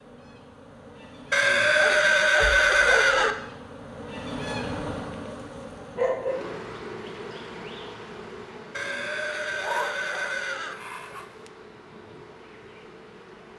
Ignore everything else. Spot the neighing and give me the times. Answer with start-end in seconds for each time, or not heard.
1.3-3.4, 8.7-10.8.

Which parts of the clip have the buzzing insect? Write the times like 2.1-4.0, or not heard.
0.0-13.5.